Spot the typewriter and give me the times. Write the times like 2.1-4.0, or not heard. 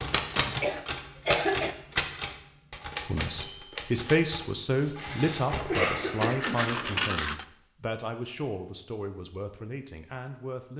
0.0-5.9.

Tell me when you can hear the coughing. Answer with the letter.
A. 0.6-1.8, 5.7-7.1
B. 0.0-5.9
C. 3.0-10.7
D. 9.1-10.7
A.